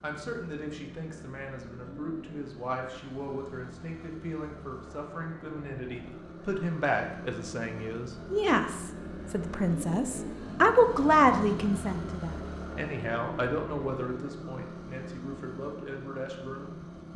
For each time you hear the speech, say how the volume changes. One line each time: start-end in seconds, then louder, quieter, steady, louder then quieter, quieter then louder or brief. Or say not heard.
0.0-17.1 louder then quieter.